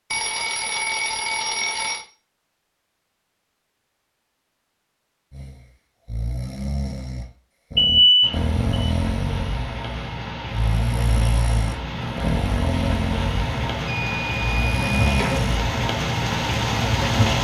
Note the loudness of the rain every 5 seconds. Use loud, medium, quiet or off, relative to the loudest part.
off, medium, medium, loud.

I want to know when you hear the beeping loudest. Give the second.
8 s.